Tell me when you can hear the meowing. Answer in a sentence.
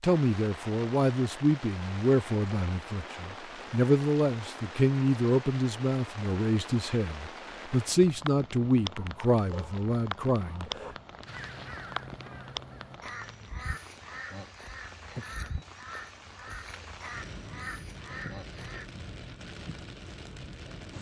The meowing can't be heard in this clip.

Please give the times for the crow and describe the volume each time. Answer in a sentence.
The crow can be heard from 11.2 to 18.9 s, at a steady volume.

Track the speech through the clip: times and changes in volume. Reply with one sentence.
You can hear the speech from 0.0 to 10.7 s, at a steady volume.